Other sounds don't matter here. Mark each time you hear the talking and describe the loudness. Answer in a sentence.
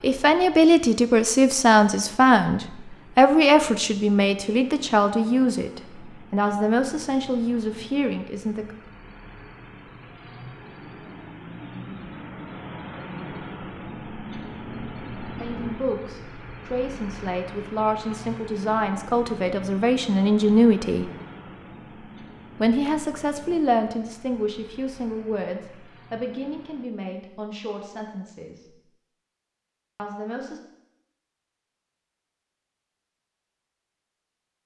You can hear the talking from 0.0 to 8.8 s, getting quieter; from 15.3 to 21.1 s, getting louder; from 22.6 to 28.8 s, getting quieter; and briefly from 29.9 to 30.6 s.